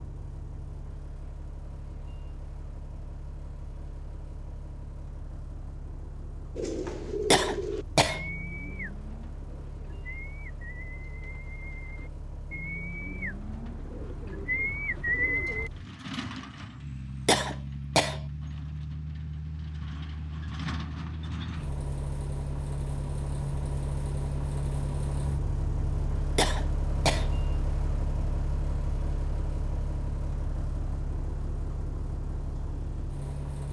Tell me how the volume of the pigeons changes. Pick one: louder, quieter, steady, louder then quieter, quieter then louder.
quieter then louder.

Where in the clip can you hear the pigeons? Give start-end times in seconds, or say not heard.
6.5-15.7.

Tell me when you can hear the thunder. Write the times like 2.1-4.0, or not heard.
not heard.